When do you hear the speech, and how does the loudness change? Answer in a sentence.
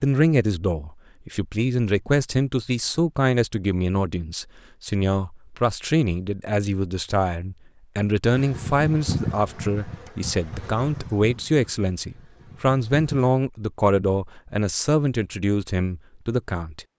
The speech can be heard from 0.0 to 16.9 s, at a steady volume.